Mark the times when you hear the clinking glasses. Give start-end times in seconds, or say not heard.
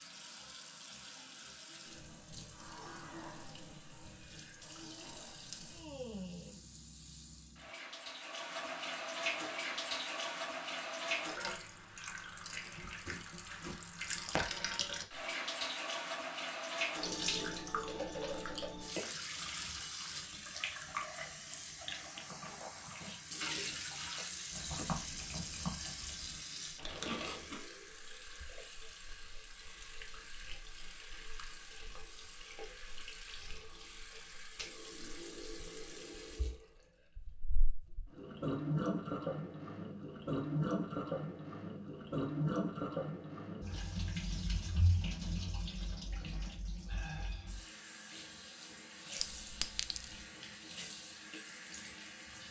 49.2-50.1.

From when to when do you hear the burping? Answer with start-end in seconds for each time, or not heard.
not heard.